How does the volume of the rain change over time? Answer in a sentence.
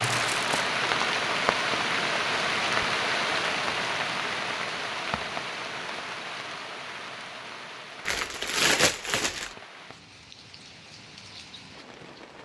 The loudness of the rain goes down.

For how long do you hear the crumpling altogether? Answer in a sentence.
The crumpling can be heard for 2 seconds in total.